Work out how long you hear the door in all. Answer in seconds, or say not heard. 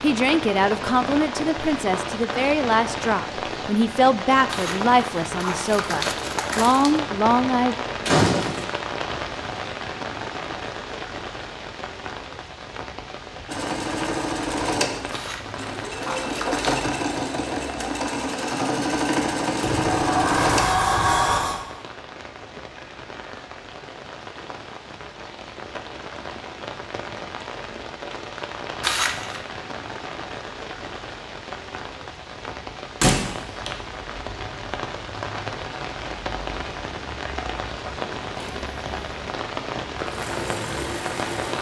3 s.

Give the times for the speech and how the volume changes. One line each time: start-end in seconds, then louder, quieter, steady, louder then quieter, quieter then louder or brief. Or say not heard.
0.0-7.8 steady.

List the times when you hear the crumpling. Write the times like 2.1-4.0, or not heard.
4.5-7.0, 15.1-16.8, 28.8-29.4.